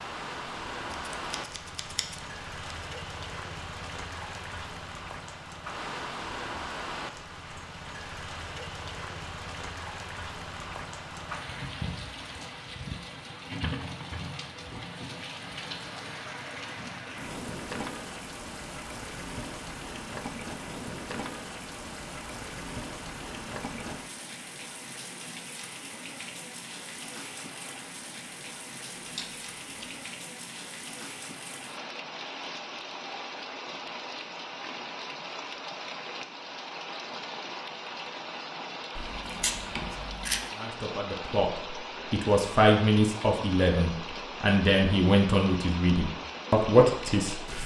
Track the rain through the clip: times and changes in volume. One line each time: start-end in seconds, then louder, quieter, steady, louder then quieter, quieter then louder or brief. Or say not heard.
0.0-47.6 steady.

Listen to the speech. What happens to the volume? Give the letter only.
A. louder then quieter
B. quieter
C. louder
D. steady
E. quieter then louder
C.